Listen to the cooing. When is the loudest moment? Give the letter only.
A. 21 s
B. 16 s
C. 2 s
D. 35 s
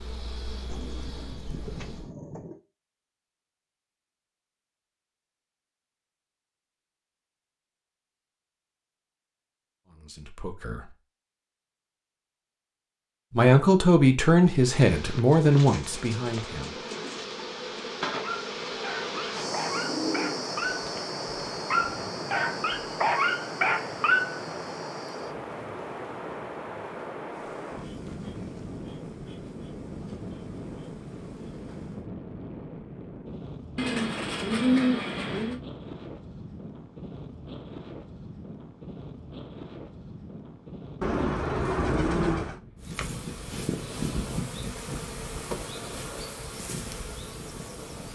D.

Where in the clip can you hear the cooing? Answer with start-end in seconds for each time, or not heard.
0.7-2.6, 15.4-17.2, 19.7-21.1, 33.8-35.6, 41.0-42.6.